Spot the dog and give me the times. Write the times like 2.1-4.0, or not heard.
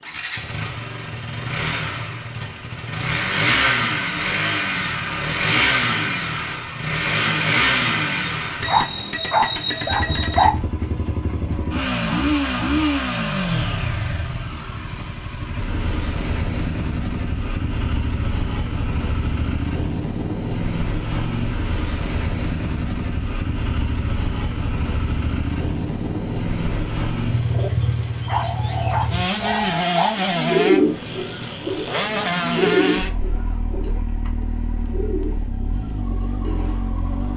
8.7-10.6, 28.2-30.1.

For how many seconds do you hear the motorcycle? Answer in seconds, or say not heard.
37 s.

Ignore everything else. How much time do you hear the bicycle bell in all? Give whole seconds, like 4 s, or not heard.
2 s.